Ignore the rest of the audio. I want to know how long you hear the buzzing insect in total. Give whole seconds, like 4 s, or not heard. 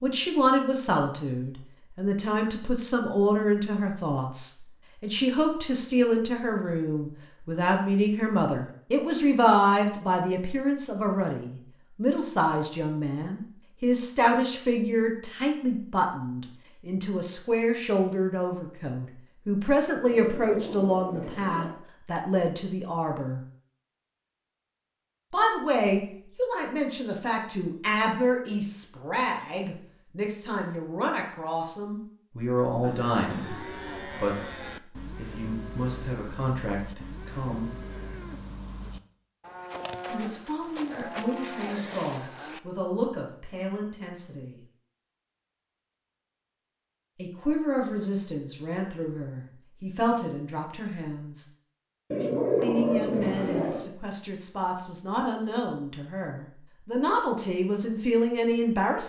not heard.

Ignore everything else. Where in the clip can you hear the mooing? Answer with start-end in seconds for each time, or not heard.
32.8-42.6.